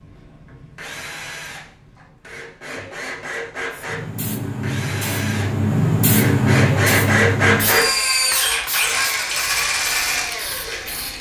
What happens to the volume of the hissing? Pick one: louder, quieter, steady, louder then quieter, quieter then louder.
louder then quieter.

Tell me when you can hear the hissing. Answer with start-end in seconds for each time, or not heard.
3.7-11.1.